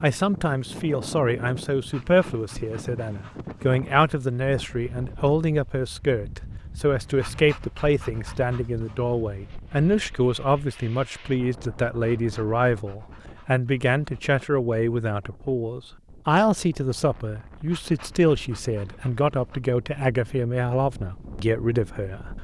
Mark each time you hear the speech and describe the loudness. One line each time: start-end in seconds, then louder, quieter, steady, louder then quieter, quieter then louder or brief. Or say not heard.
0.0-22.3 steady.